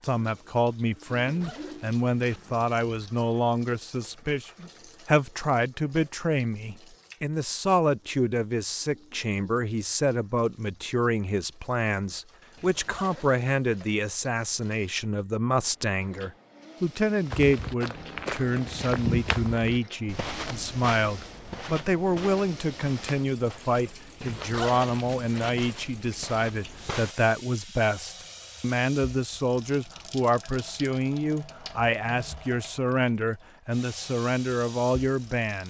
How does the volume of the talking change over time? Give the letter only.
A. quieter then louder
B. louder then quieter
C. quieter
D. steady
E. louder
D.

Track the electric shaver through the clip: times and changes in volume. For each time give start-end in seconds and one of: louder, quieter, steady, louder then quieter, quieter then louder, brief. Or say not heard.
not heard.